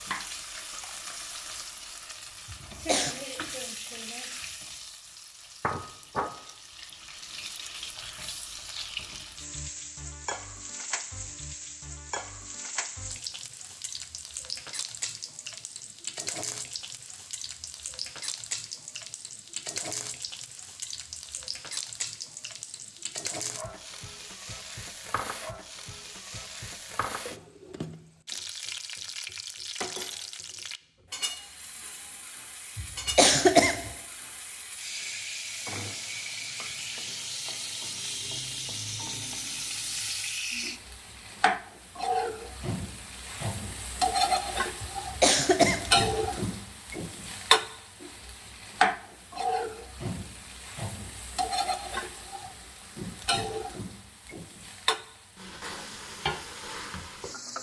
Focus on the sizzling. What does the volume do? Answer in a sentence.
The loudness of the sizzling goes up.